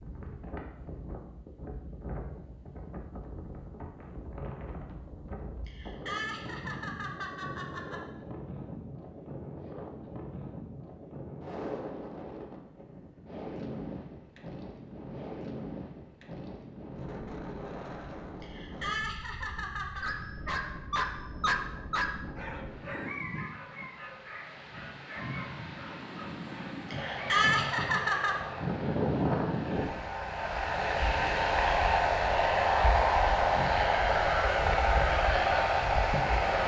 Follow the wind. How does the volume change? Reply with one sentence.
The loudness of the wind goes up.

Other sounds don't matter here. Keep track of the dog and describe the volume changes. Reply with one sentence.
The loudness of the dog goes down.